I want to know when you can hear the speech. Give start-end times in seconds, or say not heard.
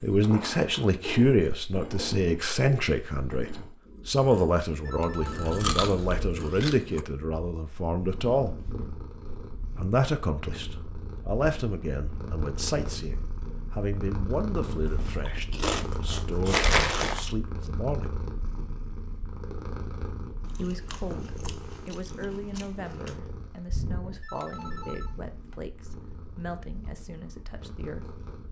0.0-8.6, 9.8-18.1, 20.6-28.1.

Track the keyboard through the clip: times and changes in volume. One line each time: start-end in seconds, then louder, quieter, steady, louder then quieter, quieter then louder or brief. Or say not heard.
not heard.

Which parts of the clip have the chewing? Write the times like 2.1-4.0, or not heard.
5.5-7.0, 14.6-17.3, 20.4-23.2.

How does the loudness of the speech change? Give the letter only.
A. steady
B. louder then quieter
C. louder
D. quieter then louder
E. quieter
E.